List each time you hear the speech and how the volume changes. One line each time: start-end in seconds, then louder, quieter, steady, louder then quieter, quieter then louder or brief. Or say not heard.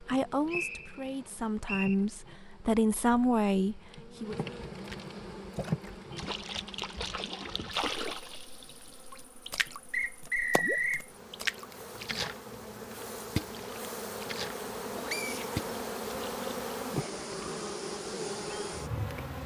0.0-4.3 louder.